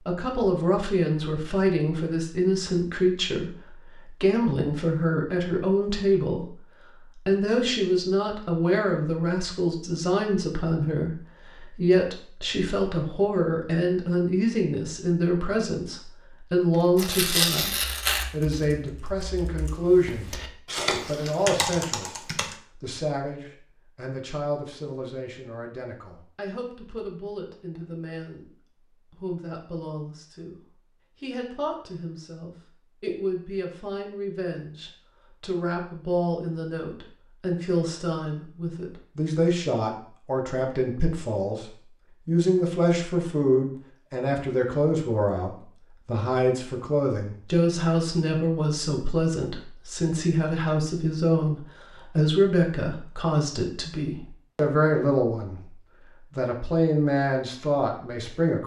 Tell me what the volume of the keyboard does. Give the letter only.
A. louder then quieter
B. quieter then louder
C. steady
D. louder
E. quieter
D.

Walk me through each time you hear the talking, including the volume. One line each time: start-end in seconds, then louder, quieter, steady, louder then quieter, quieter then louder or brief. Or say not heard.
0.1-58.6 quieter then louder.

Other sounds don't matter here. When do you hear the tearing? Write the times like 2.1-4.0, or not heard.
16.9-18.6.